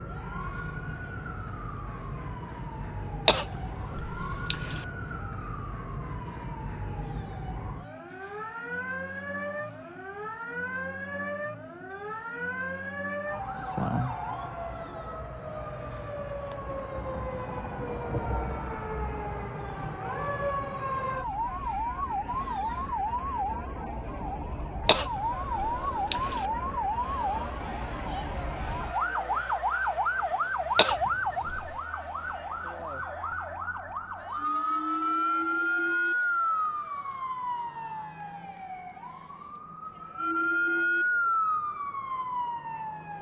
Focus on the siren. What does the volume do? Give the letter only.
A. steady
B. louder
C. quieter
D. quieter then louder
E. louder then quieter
B.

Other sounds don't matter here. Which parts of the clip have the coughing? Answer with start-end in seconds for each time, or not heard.
3.2-4.8, 24.9-26.4, 30.8-31.8.